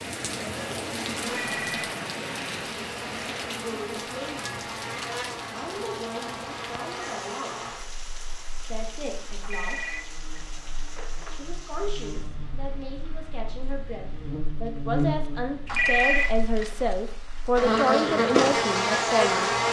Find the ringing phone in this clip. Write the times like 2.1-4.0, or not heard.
1.2-1.9, 9.4-11.4, 15.7-16.9.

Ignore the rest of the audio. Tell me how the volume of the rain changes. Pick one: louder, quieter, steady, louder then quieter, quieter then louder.
quieter.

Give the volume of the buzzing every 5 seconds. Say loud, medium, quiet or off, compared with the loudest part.
quiet, quiet, quiet, loud.